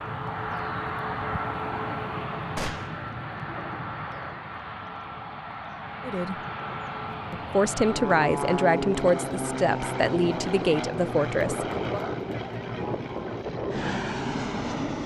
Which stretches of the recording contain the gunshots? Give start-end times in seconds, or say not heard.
2.5-3.0.